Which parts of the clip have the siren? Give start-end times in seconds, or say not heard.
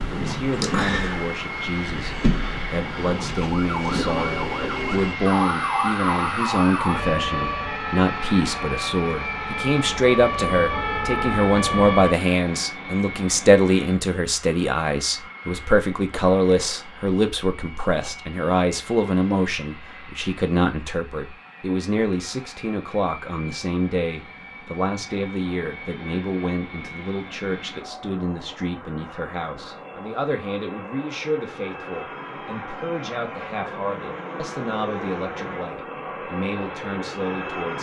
0.0-12.2.